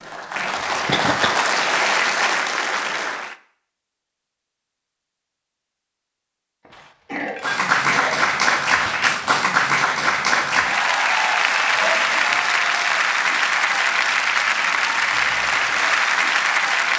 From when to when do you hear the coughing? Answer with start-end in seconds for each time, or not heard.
0.8-1.4, 6.7-8.3, 11.7-12.4.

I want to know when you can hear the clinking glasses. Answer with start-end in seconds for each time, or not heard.
6.7-7.7.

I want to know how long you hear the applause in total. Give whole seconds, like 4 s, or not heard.
13 s.